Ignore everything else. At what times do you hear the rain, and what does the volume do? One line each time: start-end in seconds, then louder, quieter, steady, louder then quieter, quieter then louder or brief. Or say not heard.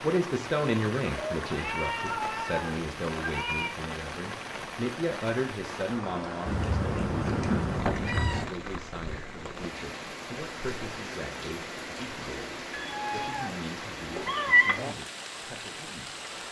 0.0-16.4 steady.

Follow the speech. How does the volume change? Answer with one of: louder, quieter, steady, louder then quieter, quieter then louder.
quieter.